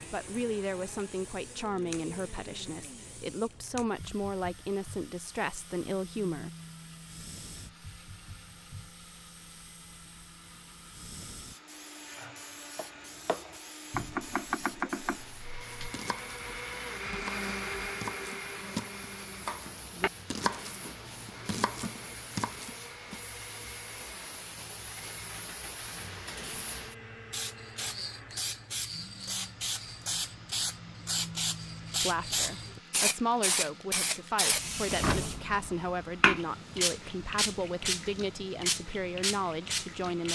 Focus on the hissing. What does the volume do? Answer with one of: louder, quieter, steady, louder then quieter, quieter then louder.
louder.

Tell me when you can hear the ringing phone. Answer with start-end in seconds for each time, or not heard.
not heard.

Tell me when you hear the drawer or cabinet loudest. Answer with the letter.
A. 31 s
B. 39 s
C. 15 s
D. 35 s
D.